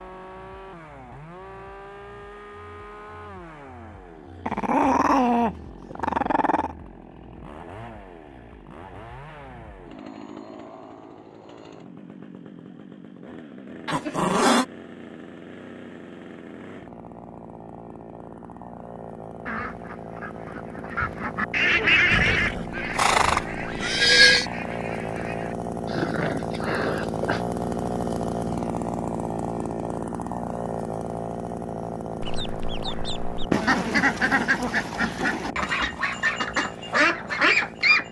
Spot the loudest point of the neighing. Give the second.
24 s.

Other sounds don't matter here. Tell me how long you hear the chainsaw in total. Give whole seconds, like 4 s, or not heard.
38 s.